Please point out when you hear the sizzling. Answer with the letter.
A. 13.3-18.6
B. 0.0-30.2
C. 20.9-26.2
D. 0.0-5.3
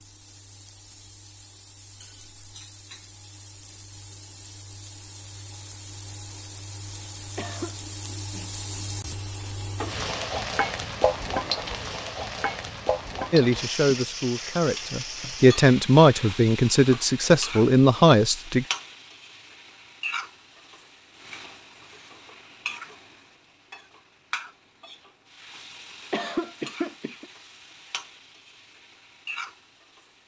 B.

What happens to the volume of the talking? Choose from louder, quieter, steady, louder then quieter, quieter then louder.
louder.